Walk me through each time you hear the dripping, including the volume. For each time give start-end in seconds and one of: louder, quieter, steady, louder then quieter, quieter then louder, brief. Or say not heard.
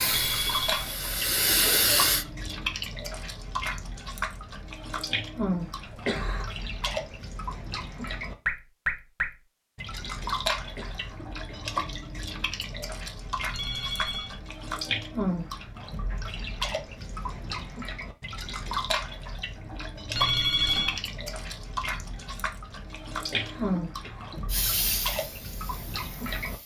0.0-26.6 steady.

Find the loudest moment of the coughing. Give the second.
6 s.